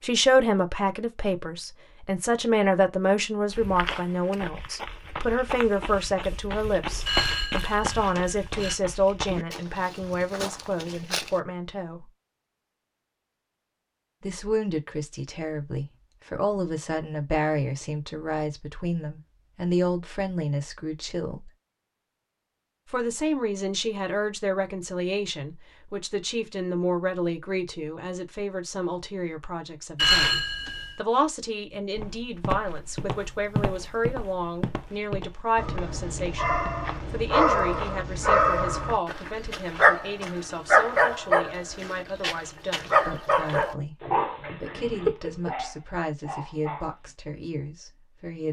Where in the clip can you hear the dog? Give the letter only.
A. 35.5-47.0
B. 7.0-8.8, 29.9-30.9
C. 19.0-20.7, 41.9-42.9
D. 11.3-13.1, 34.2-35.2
A.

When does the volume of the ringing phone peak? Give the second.
30 s.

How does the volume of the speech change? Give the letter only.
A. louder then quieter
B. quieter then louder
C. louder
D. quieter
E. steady
D.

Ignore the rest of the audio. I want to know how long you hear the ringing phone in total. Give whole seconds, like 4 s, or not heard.
3 s.